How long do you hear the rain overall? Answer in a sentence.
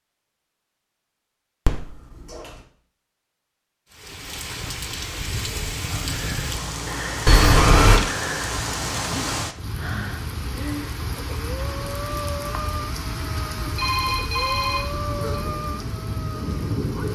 The rain can be heard for 13 seconds in total.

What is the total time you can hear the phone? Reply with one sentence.
You can hear the phone for 3 seconds altogether.